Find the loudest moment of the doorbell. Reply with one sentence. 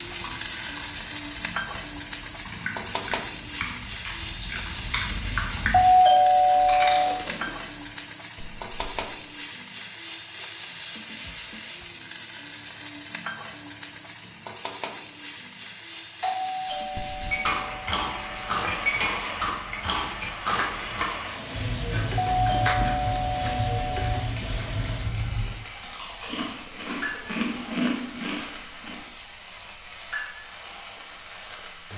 The volume of the doorbell peaks at 6 seconds.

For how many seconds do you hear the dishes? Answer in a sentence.
You can hear the dishes for 6 seconds altogether.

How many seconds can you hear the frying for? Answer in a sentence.
The frying can be heard for 32 seconds in total.